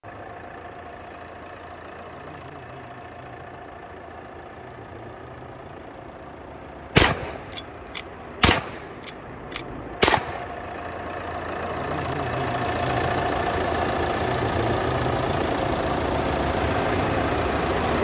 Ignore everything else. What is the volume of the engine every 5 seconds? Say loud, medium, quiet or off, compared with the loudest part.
quiet, quiet, loud, loud.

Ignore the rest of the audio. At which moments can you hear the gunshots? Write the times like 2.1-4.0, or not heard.
7.0-10.4.